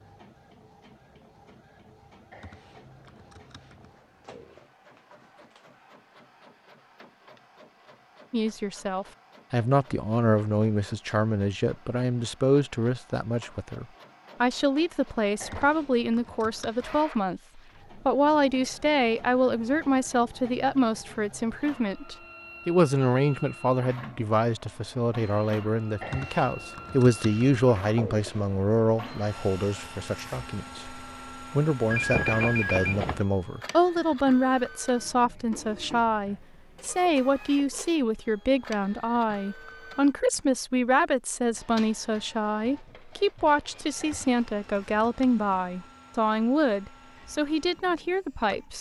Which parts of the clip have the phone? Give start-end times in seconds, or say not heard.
31.9-33.2.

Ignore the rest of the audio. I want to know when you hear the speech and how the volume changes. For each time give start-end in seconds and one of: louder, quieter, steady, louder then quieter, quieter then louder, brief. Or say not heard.
8.3-48.7 steady.